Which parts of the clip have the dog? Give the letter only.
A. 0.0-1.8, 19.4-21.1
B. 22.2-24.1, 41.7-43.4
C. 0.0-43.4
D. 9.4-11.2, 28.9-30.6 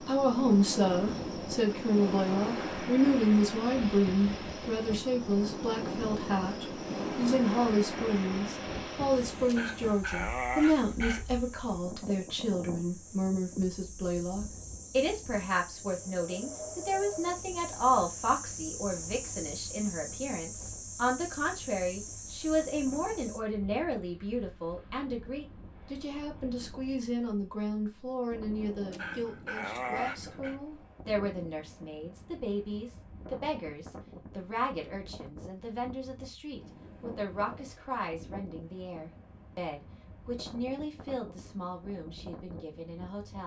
D.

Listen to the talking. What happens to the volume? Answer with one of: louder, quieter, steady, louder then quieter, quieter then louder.
quieter.